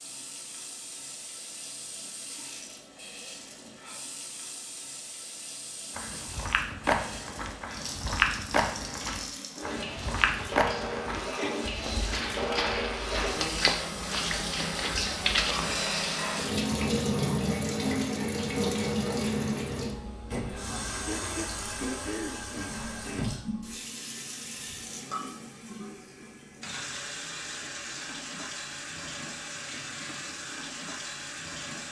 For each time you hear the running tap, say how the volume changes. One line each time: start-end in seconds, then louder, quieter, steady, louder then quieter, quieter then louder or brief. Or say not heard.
0.0-31.8 louder then quieter.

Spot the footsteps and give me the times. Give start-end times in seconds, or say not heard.
6.0-15.8.